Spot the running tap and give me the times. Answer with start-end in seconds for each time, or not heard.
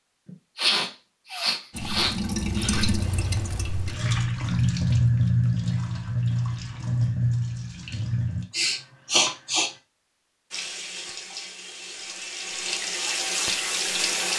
1.7-8.4, 10.5-14.3.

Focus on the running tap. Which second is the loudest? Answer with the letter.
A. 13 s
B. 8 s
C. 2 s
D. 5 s
D.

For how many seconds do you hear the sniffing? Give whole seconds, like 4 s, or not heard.
4 s.